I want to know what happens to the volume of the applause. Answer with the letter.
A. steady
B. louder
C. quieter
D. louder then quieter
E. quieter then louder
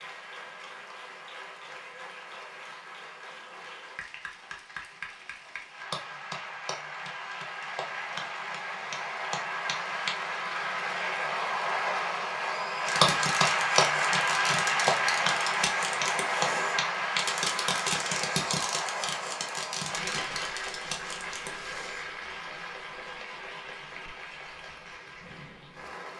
D.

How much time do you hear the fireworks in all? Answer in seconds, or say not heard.
9 s.